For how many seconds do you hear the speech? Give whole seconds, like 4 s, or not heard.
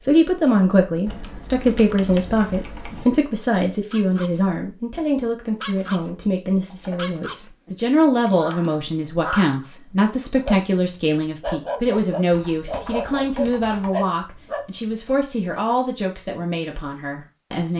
18 s.